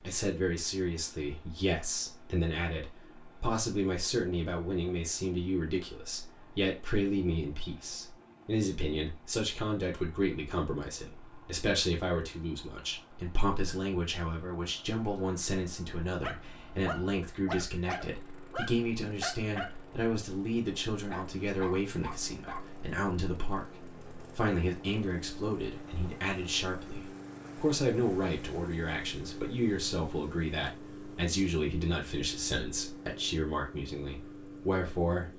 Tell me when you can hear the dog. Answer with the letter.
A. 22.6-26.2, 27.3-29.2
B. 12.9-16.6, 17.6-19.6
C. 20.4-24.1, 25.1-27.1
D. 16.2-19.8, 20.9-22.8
D.